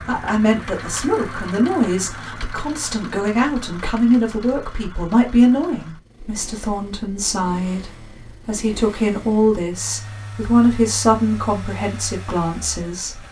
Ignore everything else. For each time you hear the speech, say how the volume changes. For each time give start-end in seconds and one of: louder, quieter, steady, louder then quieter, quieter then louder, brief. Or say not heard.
0.1-13.2 steady.